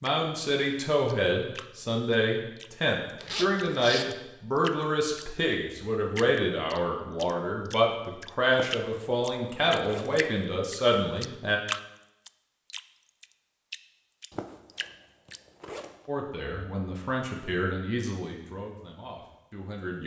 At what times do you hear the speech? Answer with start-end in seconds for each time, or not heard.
0.0-11.6, 16.1-20.0.